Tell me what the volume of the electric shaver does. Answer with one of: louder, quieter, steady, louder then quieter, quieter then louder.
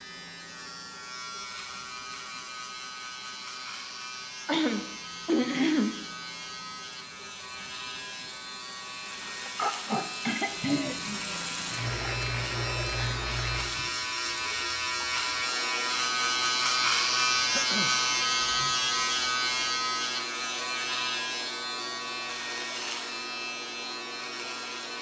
louder then quieter.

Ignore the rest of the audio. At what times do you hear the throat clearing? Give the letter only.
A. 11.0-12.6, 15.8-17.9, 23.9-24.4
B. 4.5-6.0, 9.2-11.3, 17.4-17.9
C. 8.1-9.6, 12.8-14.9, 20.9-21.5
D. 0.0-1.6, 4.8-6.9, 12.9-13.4
B.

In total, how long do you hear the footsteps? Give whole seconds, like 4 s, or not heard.
not heard.